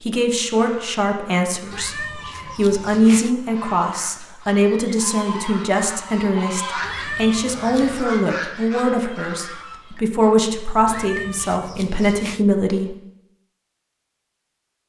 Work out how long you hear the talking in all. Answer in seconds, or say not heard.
13 s.